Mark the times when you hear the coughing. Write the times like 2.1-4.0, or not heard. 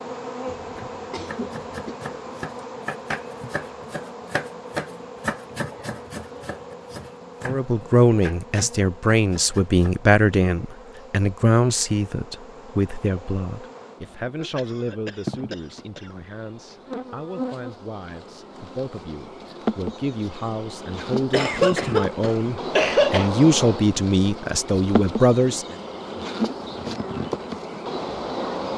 0.5-1.9, 14.6-16.1, 21.3-23.3.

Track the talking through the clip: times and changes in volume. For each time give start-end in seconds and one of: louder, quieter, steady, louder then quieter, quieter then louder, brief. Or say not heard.
7.4-25.8 quieter then louder.